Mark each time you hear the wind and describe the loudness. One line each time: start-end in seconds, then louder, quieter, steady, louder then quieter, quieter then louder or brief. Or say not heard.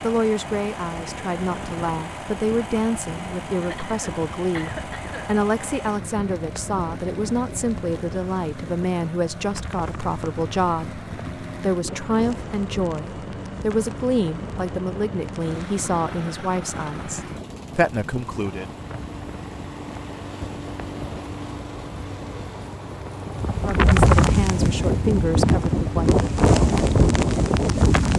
0.0-28.1 louder.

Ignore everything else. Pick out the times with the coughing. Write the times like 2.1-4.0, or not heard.
3.6-5.3.